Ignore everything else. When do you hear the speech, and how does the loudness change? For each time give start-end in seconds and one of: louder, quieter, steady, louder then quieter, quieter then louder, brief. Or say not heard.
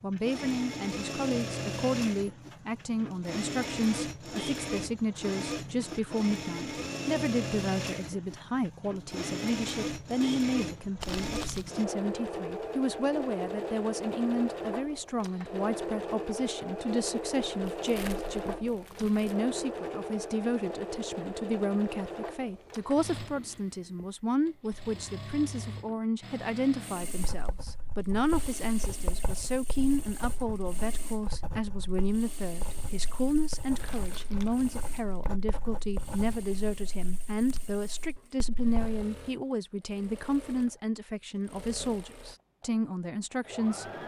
0.0-43.9 steady.